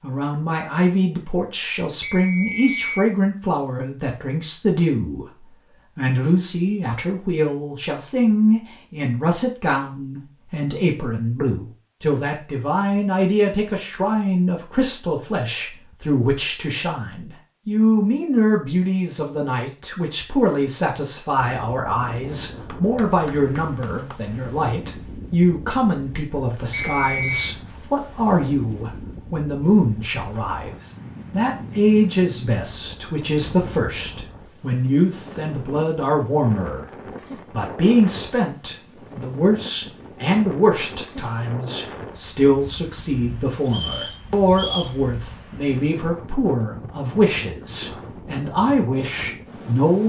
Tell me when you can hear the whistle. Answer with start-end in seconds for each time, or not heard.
2.0-3.1, 26.9-27.4, 43.7-45.0.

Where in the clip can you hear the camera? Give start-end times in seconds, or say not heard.
not heard.